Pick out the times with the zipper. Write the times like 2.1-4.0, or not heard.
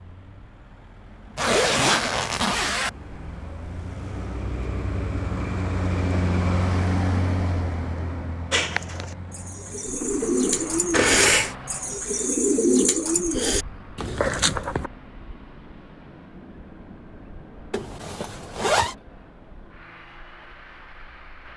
1.4-2.9, 10.9-11.6, 17.7-18.9.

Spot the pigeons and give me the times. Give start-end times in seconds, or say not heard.
8.5-14.9.